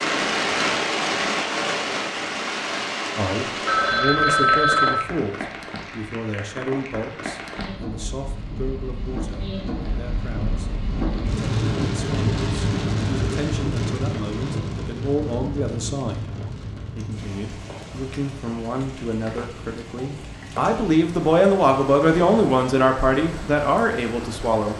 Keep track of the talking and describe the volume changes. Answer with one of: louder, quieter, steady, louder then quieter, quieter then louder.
quieter then louder.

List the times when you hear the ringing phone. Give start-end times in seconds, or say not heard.
3.6-5.0.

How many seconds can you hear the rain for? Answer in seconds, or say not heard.
25 s.